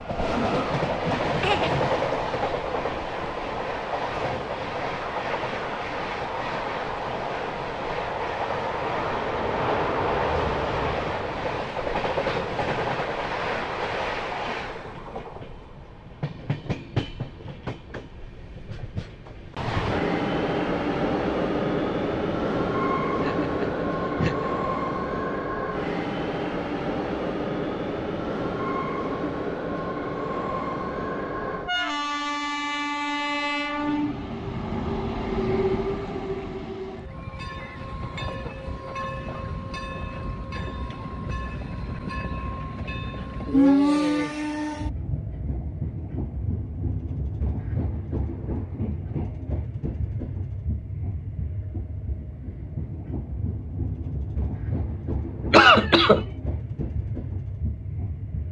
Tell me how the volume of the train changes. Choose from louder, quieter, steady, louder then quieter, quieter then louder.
quieter.